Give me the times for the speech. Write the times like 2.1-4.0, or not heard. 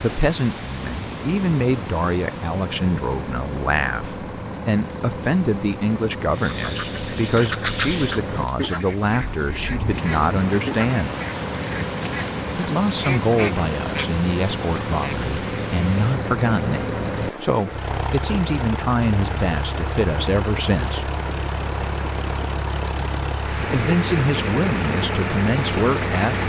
0.0-11.1, 12.6-21.1, 23.6-26.4.